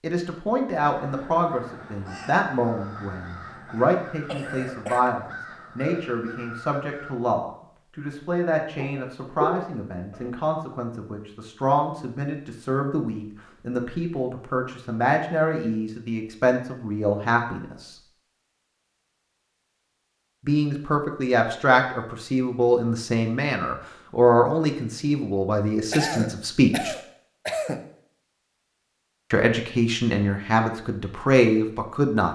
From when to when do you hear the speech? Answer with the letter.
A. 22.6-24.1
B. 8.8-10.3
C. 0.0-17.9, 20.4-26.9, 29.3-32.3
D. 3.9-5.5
C.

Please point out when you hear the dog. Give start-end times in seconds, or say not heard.
8.8-10.3.